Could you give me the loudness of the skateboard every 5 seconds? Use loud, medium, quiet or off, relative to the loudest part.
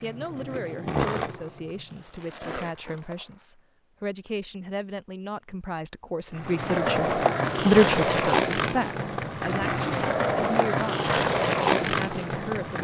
medium, loud, loud.